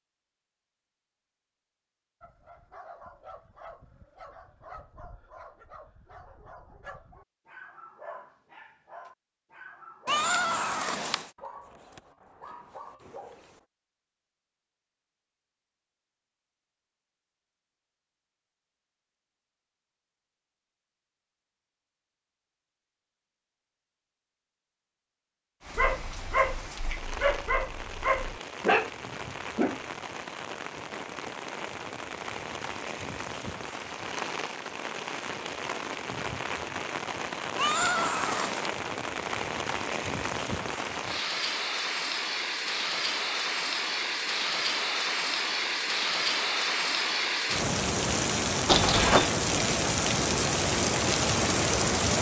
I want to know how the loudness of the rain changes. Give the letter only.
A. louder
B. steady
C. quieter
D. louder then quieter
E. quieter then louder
A.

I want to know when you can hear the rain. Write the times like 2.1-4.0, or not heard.
25.6-52.1.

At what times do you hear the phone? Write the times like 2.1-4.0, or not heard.
48.6-49.3.